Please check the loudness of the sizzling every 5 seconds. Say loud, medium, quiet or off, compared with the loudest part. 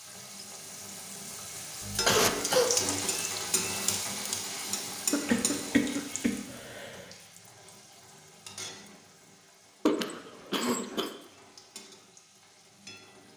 loud, medium, quiet.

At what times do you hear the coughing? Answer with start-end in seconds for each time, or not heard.
1.8-2.7, 5.1-7.0, 9.8-11.1.